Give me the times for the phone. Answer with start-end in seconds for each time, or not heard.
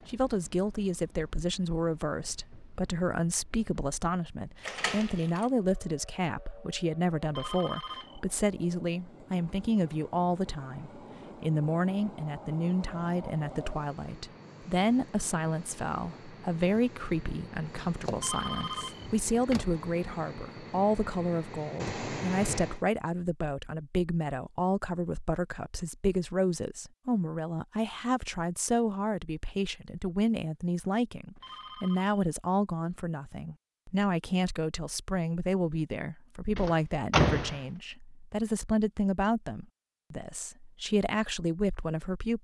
7.2-8.2, 18.1-19.1, 31.4-32.1.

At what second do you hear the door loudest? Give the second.
37 s.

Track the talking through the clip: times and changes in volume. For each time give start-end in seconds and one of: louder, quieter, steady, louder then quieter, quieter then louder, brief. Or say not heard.
0.1-42.3 steady.